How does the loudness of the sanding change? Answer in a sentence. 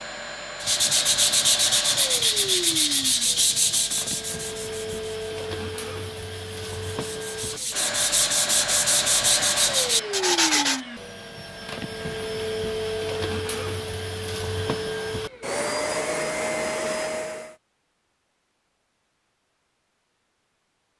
The loudness of the sanding goes down, then up.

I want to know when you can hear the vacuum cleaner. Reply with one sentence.
You can hear the vacuum cleaner from 0.0 to 17.6 s.